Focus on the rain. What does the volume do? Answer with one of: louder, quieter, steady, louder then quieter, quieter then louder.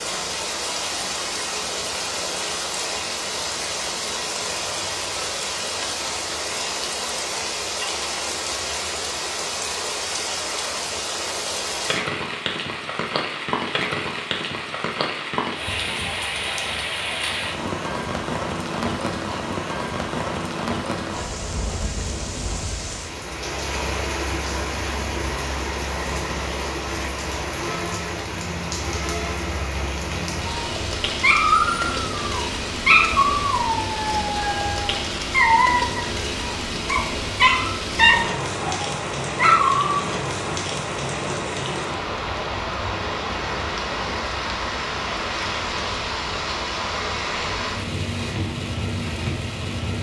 steady.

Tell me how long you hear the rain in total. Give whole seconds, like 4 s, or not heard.
50 s.